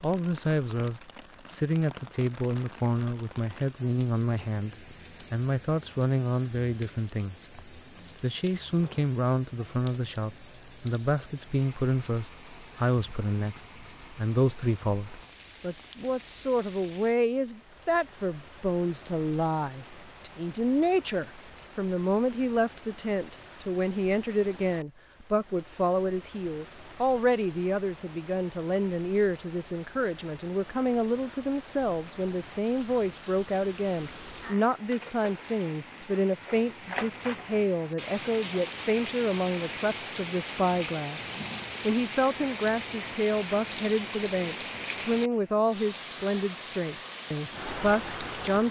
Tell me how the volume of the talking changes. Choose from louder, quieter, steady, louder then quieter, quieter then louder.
steady.